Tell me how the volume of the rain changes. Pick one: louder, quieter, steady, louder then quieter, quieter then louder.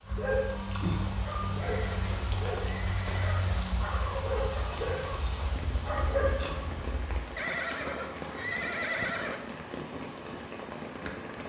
steady.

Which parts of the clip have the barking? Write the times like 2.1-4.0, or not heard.
0.0-7.1.